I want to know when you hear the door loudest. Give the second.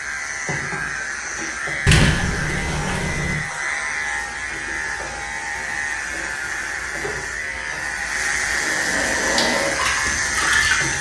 2 s.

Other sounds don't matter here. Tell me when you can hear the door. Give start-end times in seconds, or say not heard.
1.9-3.4.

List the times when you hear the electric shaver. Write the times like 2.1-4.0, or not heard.
0.0-10.9.